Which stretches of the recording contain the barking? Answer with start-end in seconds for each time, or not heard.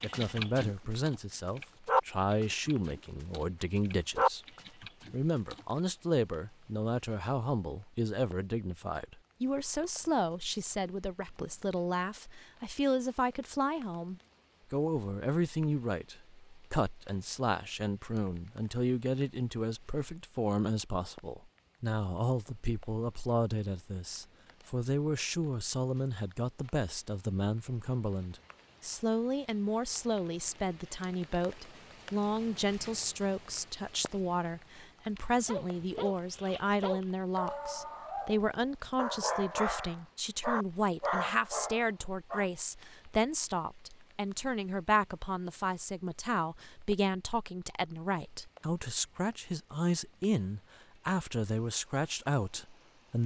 0.0-5.7, 35.1-42.5.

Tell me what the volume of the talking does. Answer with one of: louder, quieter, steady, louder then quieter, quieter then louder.
steady.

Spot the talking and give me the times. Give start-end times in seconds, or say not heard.
0.0-4.4, 5.1-53.2.